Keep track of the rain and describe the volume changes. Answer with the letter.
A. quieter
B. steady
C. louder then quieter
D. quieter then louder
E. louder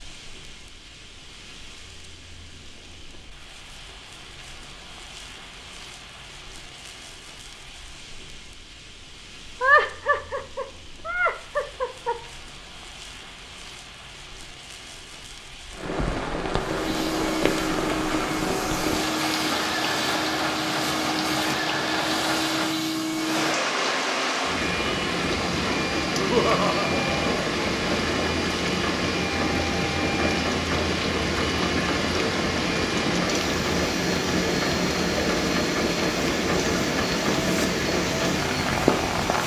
E.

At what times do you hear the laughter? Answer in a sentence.
You can hear the laughter from 9.6 to 12.2 s and from 26.1 to 27.5 s.